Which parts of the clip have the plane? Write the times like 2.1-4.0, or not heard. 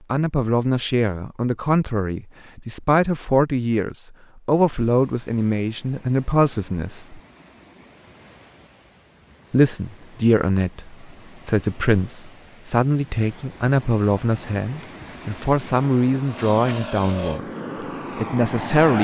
16.2-18.9.